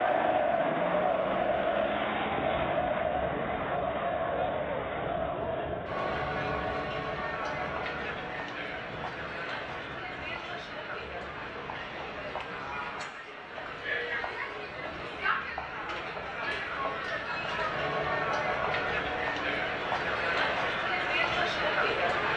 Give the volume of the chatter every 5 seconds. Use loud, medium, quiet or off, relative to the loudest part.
loud, medium, medium, loud, loud.